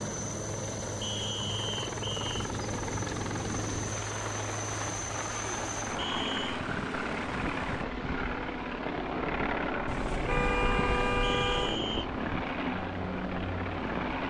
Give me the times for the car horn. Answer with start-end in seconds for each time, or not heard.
9.8-11.8.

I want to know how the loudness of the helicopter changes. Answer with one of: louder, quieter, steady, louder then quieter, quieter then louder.
steady.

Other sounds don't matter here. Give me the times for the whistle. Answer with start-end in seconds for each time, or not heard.
1.0-2.2, 6.0-6.6, 11.2-12.1.